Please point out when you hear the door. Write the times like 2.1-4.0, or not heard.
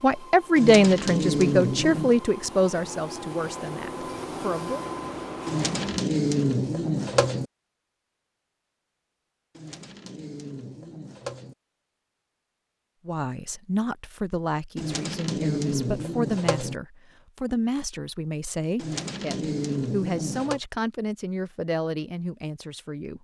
not heard.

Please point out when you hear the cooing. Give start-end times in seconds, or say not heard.
0.6-2.2, 5.5-7.5, 9.6-11.6, 14.8-16.8, 18.8-20.6.